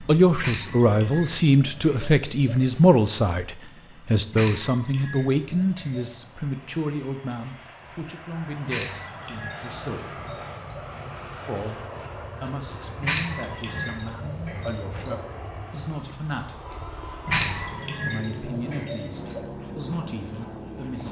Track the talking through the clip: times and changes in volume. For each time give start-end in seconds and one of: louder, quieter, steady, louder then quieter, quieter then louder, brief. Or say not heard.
0.0-10.2 quieter
11.4-21.0 steady.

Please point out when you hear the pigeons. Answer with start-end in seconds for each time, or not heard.
0.4-2.6, 4.3-6.2, 8.7-10.8, 13.0-15.2, 17.2-19.4.